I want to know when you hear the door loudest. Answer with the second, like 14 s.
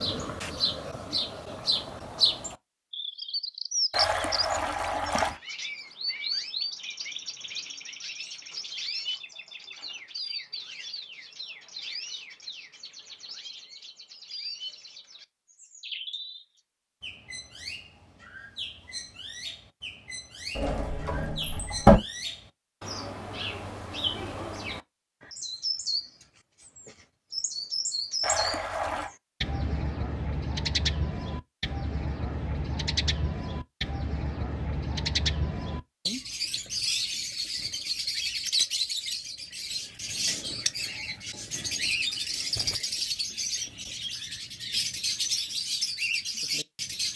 22 s.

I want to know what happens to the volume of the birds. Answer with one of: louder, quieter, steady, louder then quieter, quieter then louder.
quieter then louder.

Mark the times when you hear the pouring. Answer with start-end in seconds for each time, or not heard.
3.9-5.4, 28.2-29.1.